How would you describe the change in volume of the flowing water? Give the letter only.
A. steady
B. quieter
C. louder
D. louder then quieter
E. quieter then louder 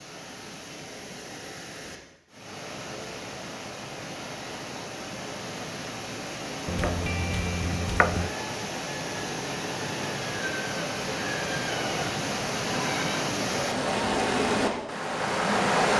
C.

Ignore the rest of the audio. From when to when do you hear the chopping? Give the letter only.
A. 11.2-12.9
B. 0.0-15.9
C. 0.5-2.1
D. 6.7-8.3
D.